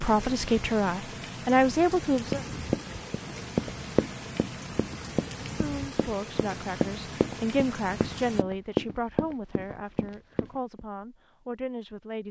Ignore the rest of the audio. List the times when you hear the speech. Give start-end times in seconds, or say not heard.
0.0-2.5, 5.5-12.2.